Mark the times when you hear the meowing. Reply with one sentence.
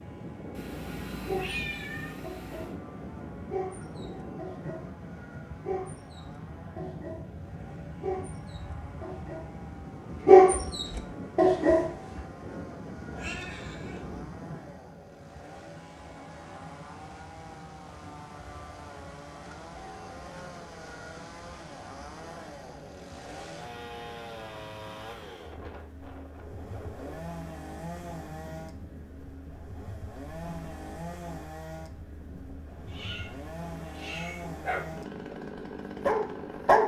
You can hear the meowing from 0.5 to 2.8 s, from 13.1 to 14.2 s and from 32.9 to 34.5 s.